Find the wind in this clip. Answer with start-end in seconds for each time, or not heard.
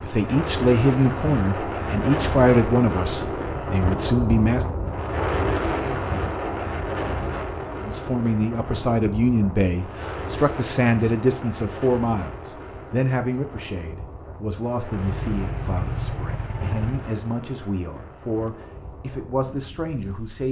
0.0-20.4.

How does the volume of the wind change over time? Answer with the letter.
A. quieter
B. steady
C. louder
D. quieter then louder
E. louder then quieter
A.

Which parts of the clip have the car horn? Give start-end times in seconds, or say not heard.
not heard.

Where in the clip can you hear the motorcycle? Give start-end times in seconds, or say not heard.
14.9-17.1.